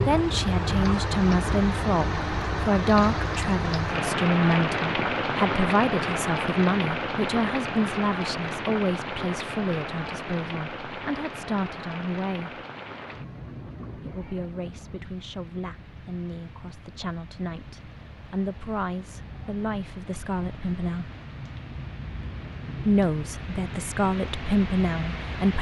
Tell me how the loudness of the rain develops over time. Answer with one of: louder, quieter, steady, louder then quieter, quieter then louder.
quieter then louder.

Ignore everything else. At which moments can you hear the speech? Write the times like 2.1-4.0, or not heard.
0.1-12.6, 13.9-21.1, 22.9-25.5.